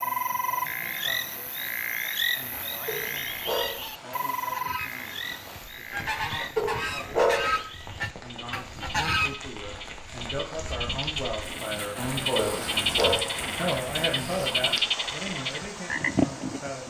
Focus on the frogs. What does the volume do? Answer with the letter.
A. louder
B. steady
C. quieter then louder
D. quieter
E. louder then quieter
C.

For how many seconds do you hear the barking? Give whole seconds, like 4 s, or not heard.
3 s.